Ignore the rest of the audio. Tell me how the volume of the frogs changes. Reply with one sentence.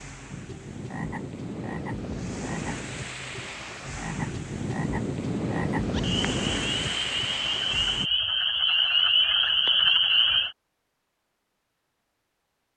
The volume of the frogs goes up.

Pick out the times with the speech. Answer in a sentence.
The speech can't be heard in this clip.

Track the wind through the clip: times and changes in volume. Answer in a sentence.
You can hear the wind from 0.0 to 8.1 s, getting louder.